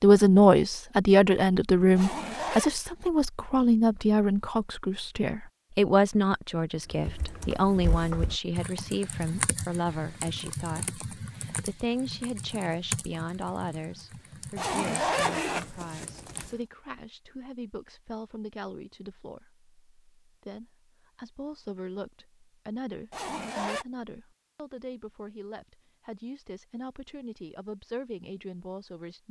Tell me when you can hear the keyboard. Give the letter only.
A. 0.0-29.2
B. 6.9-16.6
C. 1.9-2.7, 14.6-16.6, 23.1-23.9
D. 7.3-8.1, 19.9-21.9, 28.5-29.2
B.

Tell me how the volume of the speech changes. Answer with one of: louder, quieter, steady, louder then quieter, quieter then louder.
quieter.